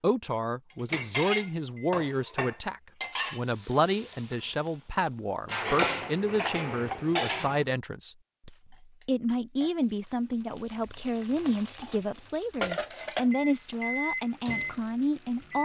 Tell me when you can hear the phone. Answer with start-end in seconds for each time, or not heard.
not heard.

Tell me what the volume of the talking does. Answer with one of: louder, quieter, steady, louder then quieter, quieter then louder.
steady.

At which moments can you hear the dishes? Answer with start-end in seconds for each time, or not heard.
0.9-3.5, 5.5-7.7, 11.8-13.3.